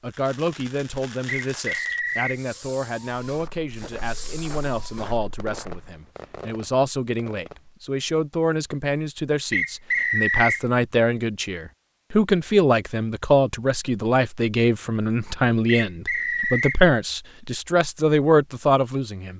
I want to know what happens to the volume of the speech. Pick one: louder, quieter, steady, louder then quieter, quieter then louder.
louder.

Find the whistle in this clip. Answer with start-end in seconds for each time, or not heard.
1.4-2.4, 9.5-10.7, 15.7-16.8.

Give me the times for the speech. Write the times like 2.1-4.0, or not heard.
0.0-19.3.